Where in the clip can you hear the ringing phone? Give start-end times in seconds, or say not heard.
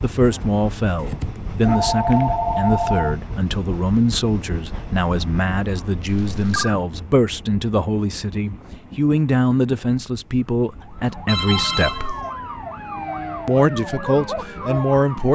1.0-3.1, 6.0-6.8, 11.2-12.2.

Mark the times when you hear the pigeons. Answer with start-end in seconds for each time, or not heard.
not heard.